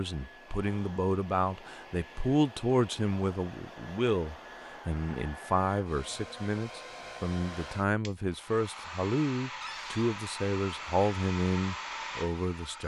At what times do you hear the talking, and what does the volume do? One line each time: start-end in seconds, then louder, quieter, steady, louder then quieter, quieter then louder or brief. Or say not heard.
0.0-12.8 steady.